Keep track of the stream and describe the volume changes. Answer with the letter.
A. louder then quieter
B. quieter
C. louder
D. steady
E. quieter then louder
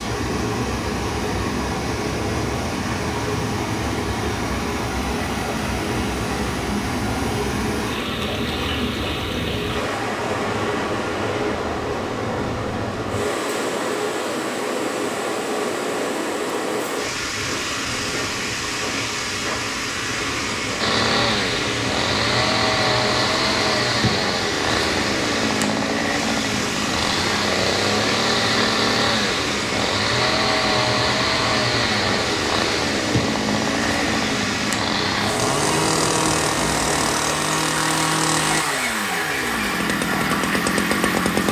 D.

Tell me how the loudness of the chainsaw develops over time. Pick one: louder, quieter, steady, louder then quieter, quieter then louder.
steady.